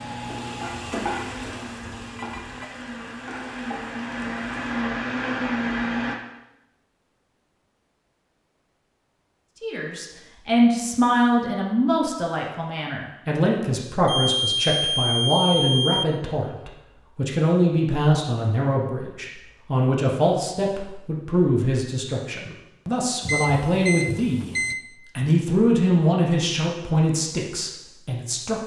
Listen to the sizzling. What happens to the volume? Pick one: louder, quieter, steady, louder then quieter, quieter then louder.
quieter.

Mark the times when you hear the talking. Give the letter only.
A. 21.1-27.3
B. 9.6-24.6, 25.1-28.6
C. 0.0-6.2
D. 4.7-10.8
B.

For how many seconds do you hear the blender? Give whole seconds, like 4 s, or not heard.
6 s.